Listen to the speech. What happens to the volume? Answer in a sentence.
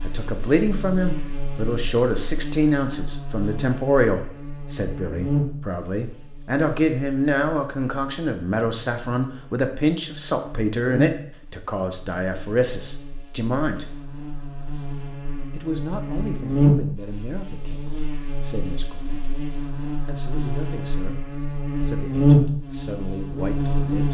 The volume of the speech goes down.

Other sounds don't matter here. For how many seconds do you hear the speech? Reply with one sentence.
You can hear the speech for 22 seconds altogether.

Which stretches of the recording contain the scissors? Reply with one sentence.
The scissors can't be heard in this clip.